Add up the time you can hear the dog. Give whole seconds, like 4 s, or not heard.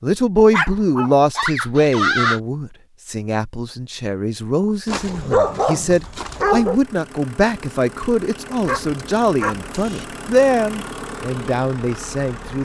5 s.